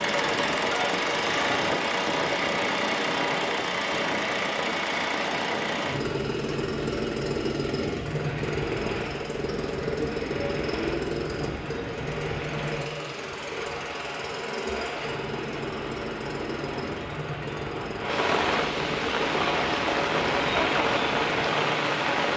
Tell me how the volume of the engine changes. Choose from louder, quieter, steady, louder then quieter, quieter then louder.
quieter.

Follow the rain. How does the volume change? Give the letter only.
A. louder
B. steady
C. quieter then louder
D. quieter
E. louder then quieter
A.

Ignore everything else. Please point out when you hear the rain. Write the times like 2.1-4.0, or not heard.
8.0-22.3.